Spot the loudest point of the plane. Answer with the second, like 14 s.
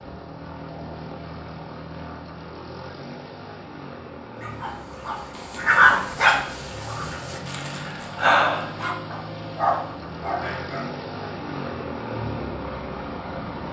12 s.